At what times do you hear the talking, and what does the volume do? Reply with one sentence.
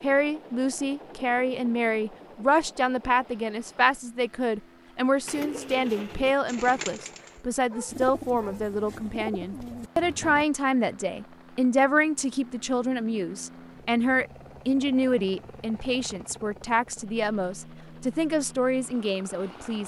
The talking can be heard from 0.0 to 19.8 s, at a steady volume.